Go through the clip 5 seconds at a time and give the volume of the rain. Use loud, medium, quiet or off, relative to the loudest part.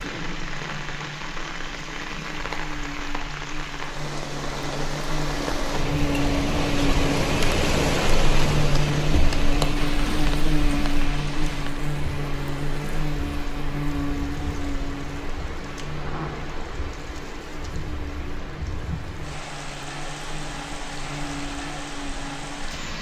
medium, loud, medium, medium, medium.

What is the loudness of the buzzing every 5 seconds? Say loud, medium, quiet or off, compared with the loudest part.
medium, loud, loud, quiet, medium.